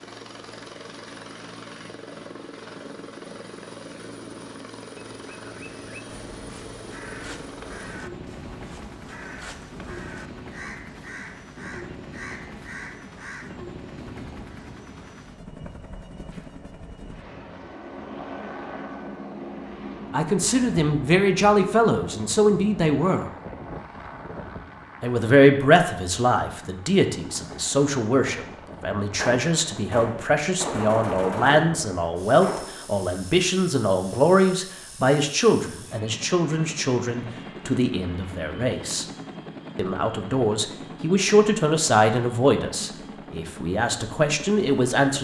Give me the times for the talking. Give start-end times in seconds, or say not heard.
20.1-23.3, 25.0-39.0, 39.8-45.1.